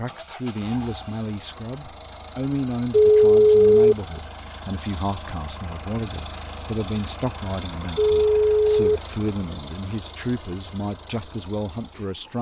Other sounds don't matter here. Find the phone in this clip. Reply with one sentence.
The phone can be heard from 2.9 to 4.0 s and from 8.0 to 8.8 s.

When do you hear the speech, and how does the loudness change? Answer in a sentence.
You can hear the speech from 0.0 to 12.3 s, at a steady volume.